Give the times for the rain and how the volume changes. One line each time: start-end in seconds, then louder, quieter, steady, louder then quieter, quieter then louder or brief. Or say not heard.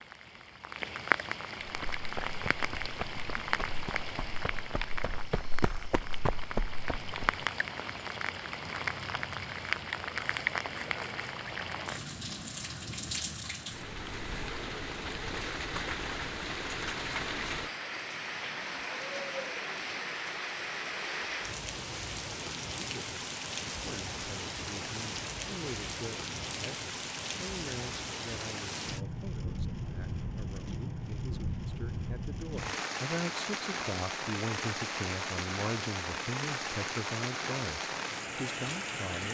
0.0-39.2 steady.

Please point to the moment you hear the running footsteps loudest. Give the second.
6 s.